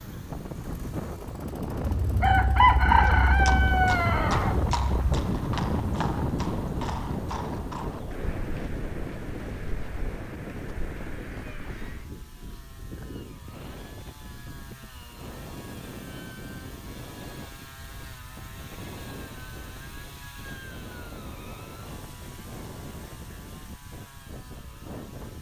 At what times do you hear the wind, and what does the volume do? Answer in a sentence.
The wind can be heard from 0.0 to 25.3 s, getting quieter.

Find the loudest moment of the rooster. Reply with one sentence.
The loudest moment of the rooster is at 3 seconds.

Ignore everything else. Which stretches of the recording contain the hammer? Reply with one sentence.
The hammer can't be heard in this clip.